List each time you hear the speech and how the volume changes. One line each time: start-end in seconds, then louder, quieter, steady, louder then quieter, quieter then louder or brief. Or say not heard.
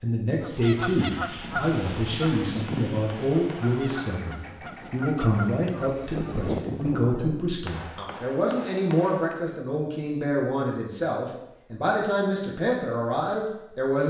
0.0-14.0 steady.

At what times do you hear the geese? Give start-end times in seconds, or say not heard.
0.3-7.5.